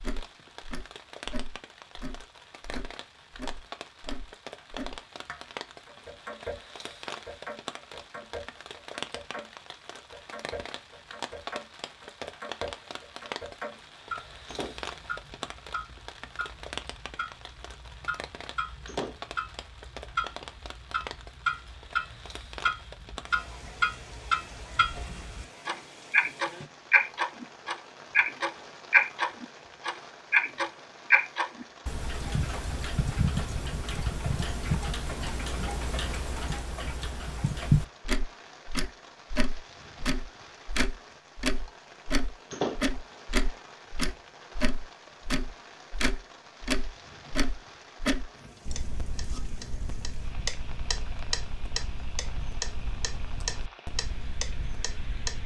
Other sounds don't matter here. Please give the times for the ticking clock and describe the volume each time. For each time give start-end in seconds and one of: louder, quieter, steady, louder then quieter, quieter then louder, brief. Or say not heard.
0.0-55.4 louder then quieter.